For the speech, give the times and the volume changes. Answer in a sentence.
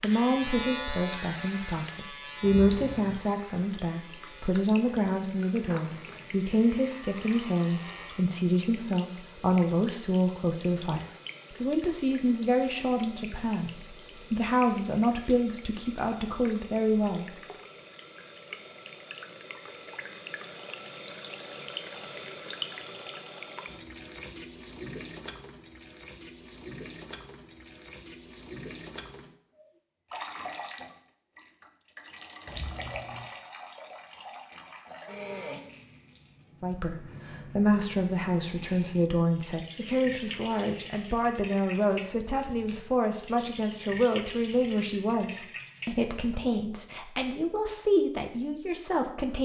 The speech can be heard from 0.0 to 17.2 s, at a steady volume; and from 36.6 to 49.4 s, at a steady volume.